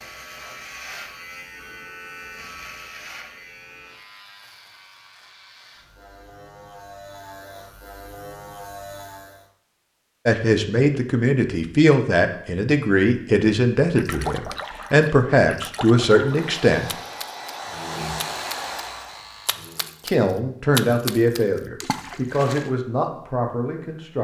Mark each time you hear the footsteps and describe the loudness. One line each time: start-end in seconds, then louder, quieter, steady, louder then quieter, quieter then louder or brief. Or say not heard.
not heard.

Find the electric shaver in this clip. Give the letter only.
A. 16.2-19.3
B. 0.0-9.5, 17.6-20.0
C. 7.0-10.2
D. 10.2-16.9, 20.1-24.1
B.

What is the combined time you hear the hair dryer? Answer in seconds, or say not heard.
3 s.